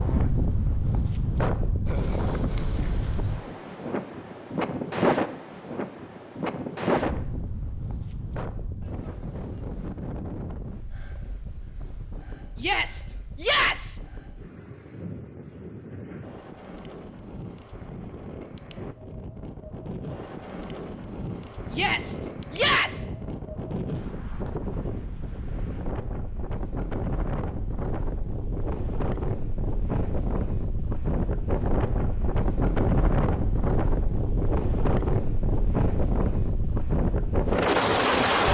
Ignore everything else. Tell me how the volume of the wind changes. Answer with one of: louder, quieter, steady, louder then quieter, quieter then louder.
quieter then louder.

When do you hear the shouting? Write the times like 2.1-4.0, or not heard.
12.6-14.0, 21.7-23.1.